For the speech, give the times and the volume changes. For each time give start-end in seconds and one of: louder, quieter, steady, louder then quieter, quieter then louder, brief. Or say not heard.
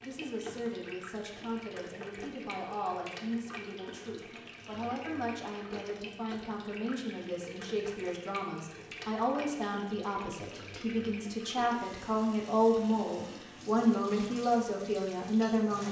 0.0-15.8 louder.